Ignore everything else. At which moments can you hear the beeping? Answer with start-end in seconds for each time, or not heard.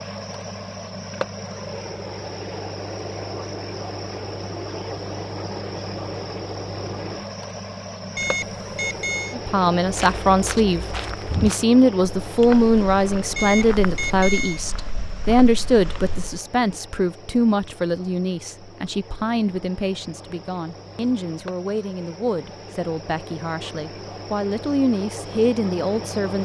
8.2-9.3, 13.3-14.6.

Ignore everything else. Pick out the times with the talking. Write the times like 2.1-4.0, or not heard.
9.3-26.4.